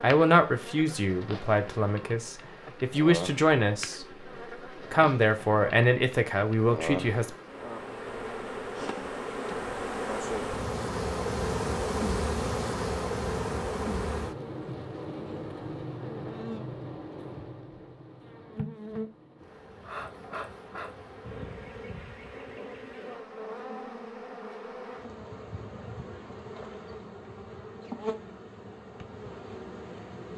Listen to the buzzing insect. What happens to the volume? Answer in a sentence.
The loudness of the buzzing insect goes up, then down.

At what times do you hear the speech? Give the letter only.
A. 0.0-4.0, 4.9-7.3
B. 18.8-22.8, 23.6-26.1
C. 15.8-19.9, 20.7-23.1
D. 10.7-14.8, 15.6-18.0
A.